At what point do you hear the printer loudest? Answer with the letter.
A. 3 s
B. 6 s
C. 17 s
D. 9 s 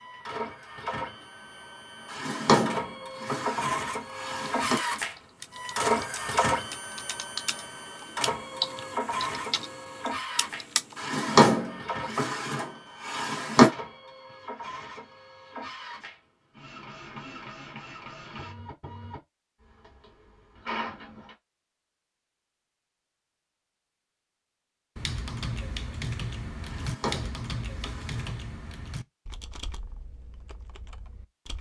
B.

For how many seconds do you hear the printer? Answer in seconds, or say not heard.
21 s.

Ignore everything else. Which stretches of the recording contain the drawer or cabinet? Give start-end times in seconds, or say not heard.
2.1-4.8, 10.9-13.7, 26.6-28.4.